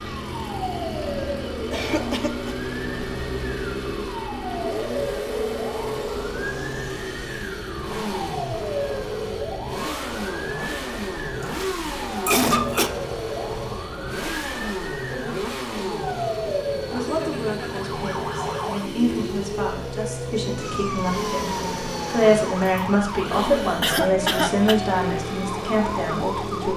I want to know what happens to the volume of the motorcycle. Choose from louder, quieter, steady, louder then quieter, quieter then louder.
steady.